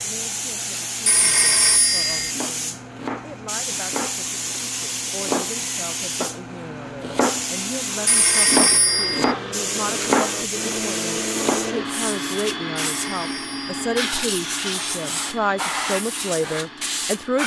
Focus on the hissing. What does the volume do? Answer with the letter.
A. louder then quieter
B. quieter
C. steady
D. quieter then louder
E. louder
C.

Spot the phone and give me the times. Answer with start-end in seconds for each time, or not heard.
1.1-2.4, 8.1-9.3, 12.9-13.9.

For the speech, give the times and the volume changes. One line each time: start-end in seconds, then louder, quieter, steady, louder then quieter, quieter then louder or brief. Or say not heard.
0.0-17.4 louder.